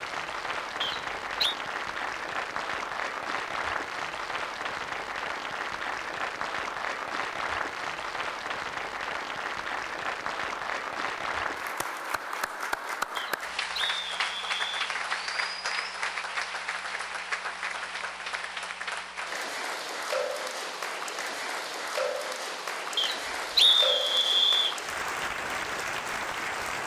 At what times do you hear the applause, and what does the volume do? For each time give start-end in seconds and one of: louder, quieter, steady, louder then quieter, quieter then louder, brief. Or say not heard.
0.0-26.8 steady.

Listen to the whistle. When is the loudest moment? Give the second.
24 s.